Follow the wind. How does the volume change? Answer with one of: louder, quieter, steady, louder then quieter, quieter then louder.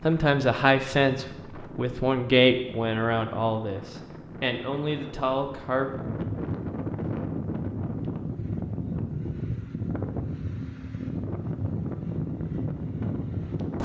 louder.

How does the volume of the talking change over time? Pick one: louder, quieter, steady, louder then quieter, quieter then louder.
quieter.